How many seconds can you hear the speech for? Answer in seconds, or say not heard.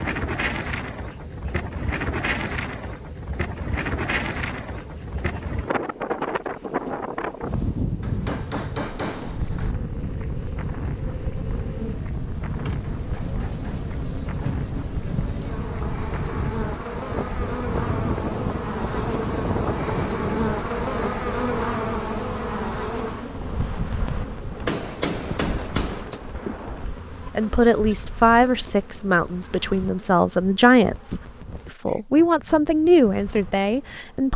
7 s.